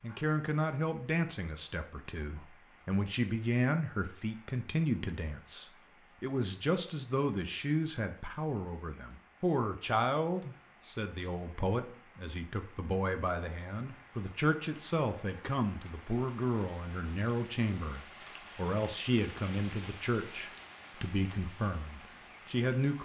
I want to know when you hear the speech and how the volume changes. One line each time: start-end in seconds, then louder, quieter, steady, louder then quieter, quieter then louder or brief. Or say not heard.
0.0-23.0 steady.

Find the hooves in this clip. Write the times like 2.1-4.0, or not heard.
not heard.